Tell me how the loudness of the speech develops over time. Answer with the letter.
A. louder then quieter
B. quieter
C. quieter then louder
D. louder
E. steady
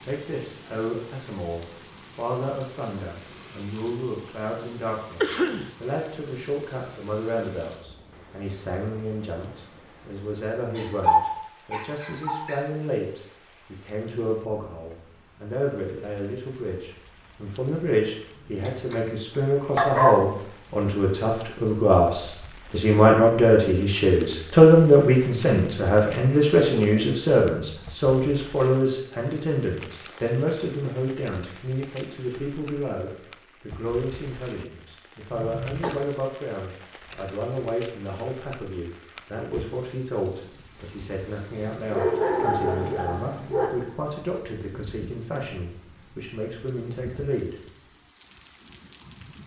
A.